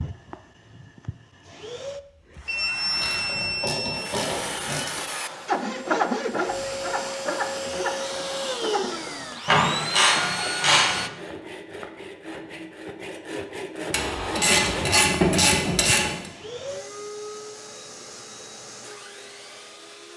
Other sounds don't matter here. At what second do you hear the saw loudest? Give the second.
6 s.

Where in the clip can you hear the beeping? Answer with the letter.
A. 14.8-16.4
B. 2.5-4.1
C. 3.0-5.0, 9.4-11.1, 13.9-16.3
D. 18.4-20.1
B.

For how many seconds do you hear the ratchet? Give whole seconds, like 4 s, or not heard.
6 s.